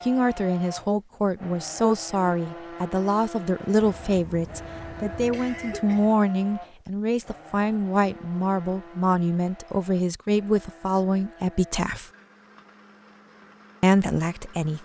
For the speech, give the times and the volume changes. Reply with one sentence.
You can hear the speech from 0.0 to 12.1 s, at a steady volume; and briefly from 13.8 to 14.8 s.